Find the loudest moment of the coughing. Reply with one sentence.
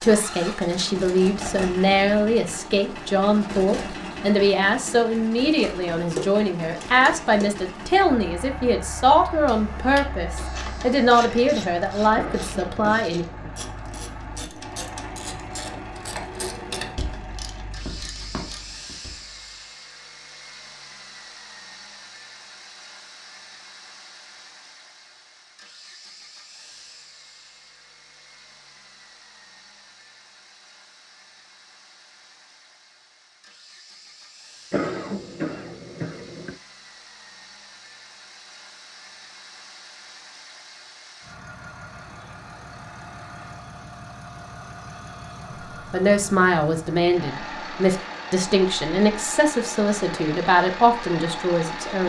The volume of the coughing peaks at 35 seconds.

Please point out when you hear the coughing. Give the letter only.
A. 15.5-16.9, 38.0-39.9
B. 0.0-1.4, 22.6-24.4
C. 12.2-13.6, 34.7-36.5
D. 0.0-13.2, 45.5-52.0
C.